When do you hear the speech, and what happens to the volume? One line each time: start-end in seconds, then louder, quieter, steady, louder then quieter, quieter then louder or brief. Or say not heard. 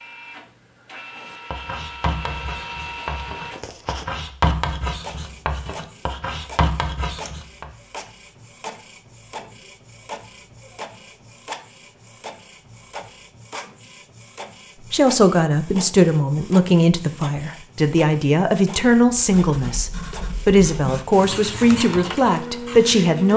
14.9-23.3 steady.